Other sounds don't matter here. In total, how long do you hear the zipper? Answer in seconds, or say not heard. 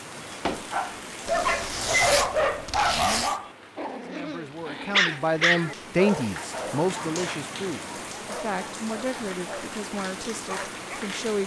3 s.